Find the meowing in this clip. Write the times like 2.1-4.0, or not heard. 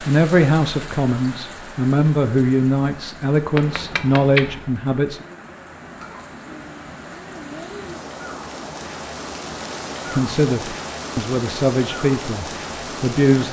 3.5-4.7.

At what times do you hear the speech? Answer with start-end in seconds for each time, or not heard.
0.0-5.2, 10.1-13.4.